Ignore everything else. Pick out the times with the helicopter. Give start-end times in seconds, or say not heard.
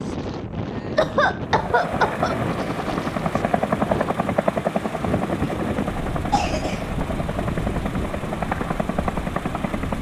1.4-9.9.